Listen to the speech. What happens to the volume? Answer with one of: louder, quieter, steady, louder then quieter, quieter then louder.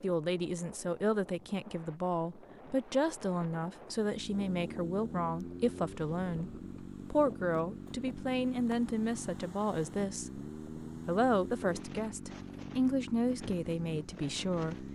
steady.